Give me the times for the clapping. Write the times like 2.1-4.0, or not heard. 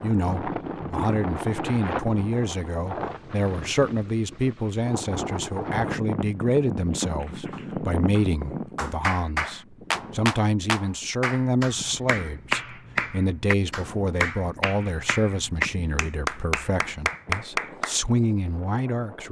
7.0-17.9.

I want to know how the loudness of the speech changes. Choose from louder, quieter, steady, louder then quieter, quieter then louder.
steady.